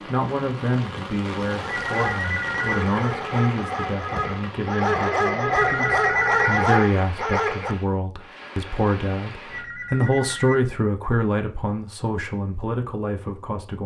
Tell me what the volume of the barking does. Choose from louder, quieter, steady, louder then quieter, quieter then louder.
louder.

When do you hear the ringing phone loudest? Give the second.
6 s.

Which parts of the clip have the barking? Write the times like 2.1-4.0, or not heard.
1.4-7.8.